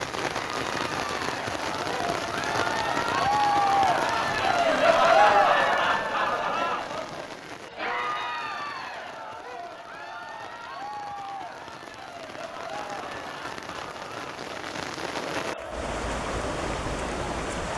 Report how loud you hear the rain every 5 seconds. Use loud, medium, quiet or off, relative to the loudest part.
loud, medium, medium, loud.